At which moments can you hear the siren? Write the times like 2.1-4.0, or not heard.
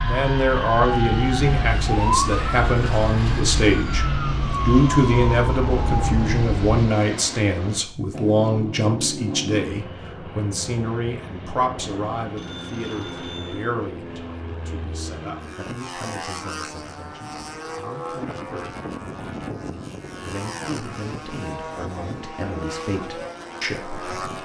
0.0-6.8.